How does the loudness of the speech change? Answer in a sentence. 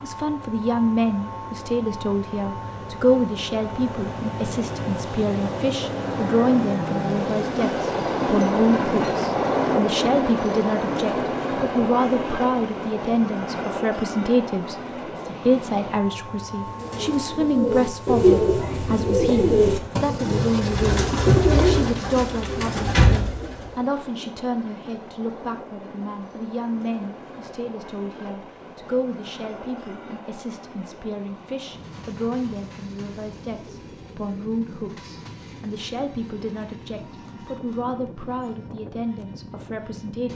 The volume of the speech goes down.